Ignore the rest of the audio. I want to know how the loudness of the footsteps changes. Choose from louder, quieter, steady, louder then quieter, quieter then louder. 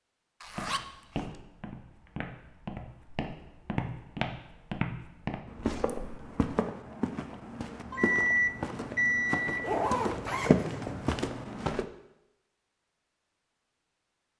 louder.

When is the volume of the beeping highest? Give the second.
8 s.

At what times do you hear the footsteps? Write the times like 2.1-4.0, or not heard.
0.5-11.8.